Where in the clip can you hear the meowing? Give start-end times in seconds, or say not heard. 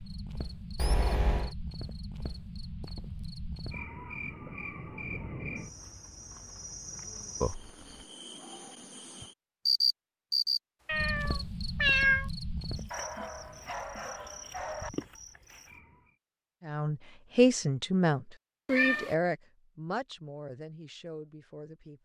0.8-1.5, 10.8-12.3, 18.7-19.1.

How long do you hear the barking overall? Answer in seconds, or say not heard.
2 s.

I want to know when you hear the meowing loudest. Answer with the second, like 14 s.
12 s.